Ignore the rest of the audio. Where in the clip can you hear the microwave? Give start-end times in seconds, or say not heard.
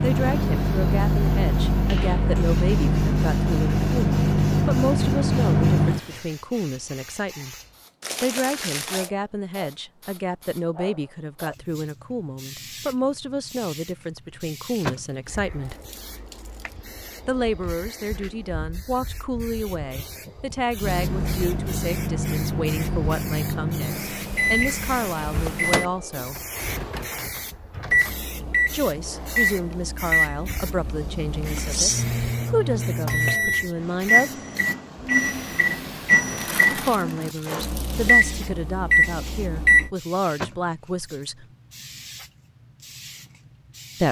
0.0-6.2, 20.8-39.9.